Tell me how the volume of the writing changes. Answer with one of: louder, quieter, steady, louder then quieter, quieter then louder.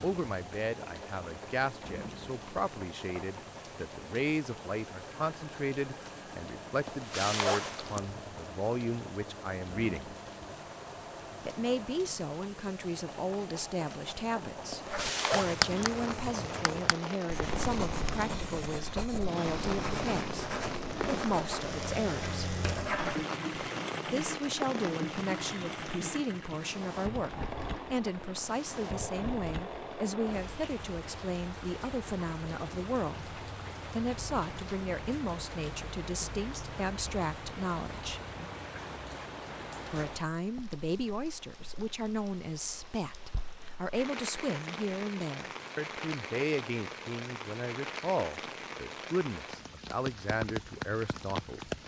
quieter.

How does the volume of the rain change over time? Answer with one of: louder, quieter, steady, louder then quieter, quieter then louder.
steady.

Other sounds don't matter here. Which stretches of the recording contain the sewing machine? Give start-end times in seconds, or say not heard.
0.2-30.5.